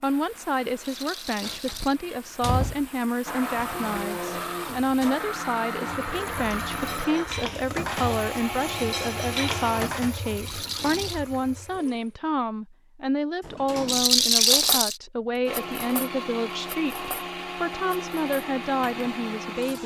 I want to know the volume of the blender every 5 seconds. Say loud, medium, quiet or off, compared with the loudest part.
loud, loud, off, loud.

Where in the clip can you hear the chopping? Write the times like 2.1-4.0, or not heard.
not heard.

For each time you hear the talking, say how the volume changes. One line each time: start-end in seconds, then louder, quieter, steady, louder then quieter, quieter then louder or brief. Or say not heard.
0.0-19.8 steady.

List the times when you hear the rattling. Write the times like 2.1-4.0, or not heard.
0.8-1.9, 10.4-11.2, 13.8-15.0.